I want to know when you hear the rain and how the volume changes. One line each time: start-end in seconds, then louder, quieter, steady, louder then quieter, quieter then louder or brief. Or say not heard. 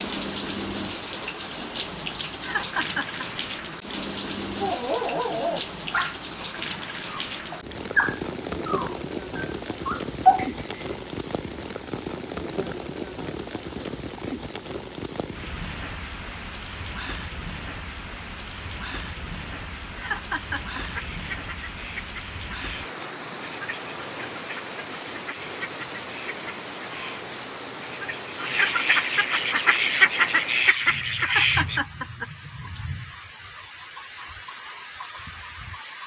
0.0-36.0 quieter.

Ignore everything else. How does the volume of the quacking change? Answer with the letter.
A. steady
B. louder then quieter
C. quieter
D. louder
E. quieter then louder
D.